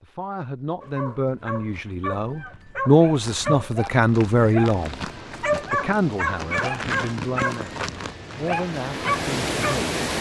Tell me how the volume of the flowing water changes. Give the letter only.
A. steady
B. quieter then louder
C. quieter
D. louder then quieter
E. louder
E.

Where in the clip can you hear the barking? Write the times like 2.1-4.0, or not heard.
0.8-9.8.